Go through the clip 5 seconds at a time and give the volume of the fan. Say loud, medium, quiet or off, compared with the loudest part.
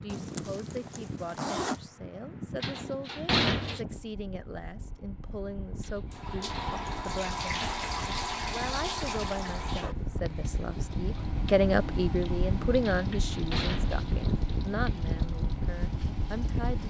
medium, medium, loud, loud.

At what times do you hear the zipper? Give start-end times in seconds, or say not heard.
0.1-1.8.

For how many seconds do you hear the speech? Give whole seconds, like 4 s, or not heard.
17 s.